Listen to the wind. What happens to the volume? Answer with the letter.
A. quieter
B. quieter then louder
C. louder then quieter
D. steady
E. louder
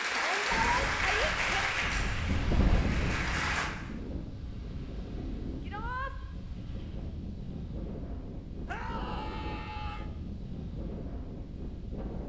A.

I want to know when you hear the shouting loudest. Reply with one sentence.
The loudest moment of the shouting is at 1 second.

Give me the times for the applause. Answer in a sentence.
The applause can be heard from 0.0 to 3.7 s.